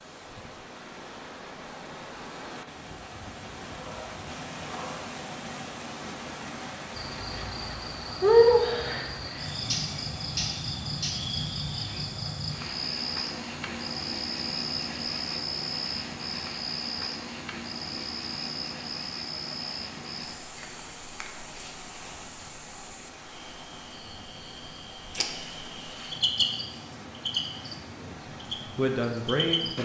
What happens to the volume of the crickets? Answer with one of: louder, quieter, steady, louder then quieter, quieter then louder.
quieter then louder.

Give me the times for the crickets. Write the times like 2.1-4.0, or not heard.
7.0-29.7.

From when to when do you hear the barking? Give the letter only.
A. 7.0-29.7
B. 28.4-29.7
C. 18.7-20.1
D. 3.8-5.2
D.